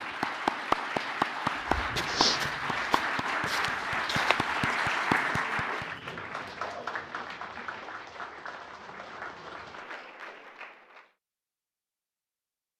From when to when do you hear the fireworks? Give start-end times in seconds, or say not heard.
not heard.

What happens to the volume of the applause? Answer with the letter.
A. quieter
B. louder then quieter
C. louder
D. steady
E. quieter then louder
A.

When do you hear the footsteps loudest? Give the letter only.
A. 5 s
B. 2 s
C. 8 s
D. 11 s
B.